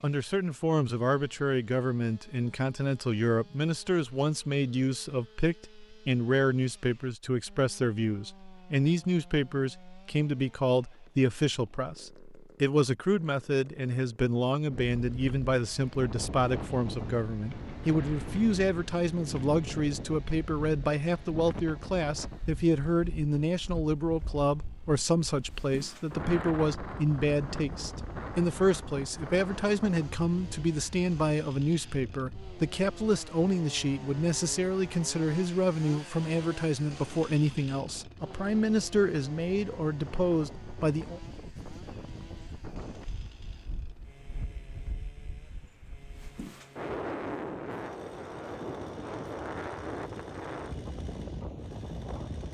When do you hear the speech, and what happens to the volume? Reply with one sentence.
The speech can be heard from 0.0 to 41.2 s, at a steady volume.